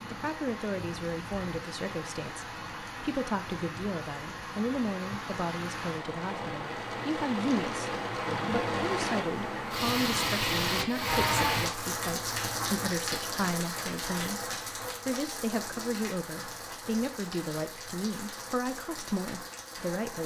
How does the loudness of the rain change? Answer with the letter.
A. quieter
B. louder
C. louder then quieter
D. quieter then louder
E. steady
C.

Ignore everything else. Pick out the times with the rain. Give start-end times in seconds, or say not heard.
0.0-20.2.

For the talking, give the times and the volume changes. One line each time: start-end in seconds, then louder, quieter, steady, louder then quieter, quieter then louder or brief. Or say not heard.
0.1-20.2 steady.